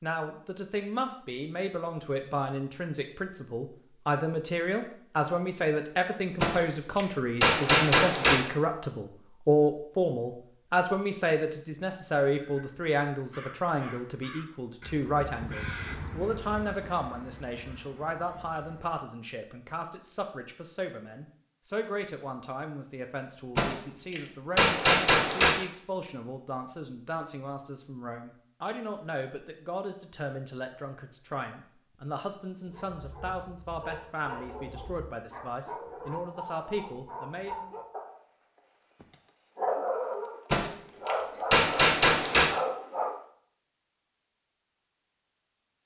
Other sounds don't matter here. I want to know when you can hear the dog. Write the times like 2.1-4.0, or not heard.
32.6-38.2, 39.0-43.2.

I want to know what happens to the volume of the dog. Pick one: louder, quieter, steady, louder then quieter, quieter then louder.
louder.